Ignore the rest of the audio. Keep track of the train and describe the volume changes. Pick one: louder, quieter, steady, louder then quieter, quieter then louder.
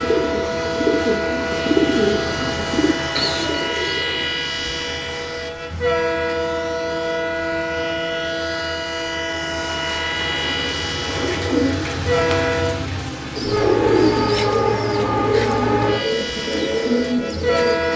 steady.